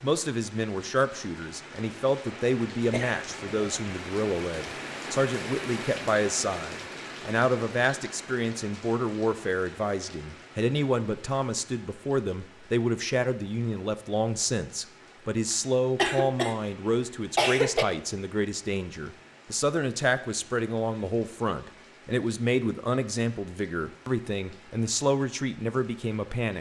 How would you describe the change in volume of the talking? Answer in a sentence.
The volume of the talking stays about the same.